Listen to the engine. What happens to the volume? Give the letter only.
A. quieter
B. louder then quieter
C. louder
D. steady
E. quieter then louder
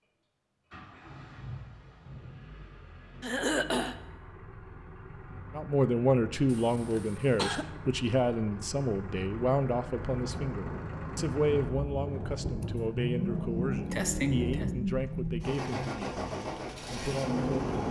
C.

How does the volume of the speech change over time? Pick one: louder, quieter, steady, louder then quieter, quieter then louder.
quieter.